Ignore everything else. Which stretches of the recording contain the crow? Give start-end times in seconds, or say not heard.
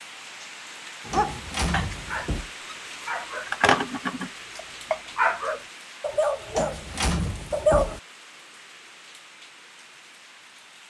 not heard.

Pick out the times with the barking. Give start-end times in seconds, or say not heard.
1.1-8.0.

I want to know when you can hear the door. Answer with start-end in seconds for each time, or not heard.
1.1-2.5, 6.5-8.0.